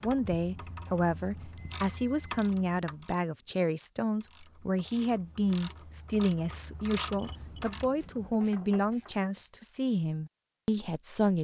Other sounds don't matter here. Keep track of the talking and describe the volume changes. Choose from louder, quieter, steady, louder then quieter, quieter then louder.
steady.